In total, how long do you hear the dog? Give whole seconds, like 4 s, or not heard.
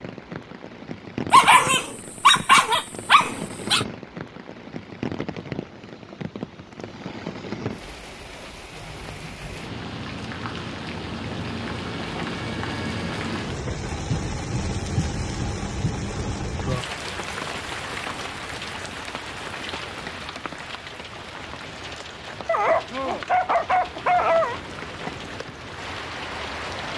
5 s.